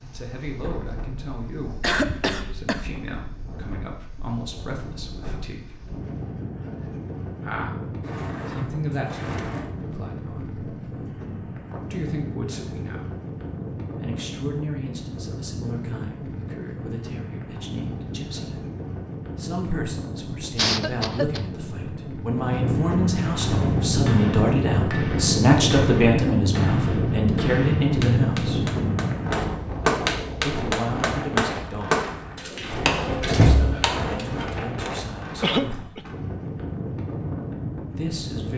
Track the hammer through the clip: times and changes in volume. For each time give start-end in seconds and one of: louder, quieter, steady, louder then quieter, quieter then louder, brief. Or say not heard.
23.4-34.9 louder then quieter.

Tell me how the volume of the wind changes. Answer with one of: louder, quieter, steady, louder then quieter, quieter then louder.
louder then quieter.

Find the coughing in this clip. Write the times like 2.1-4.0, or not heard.
1.8-2.9, 20.6-21.4, 35.4-36.0.